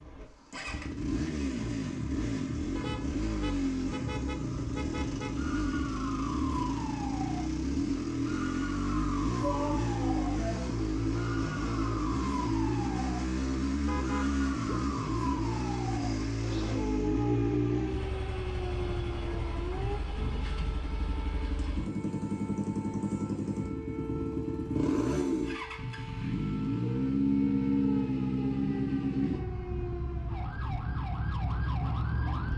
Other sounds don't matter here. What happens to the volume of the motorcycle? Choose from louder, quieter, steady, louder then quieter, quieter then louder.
steady.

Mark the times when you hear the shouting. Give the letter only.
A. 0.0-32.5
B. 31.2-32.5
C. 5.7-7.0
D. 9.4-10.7
D.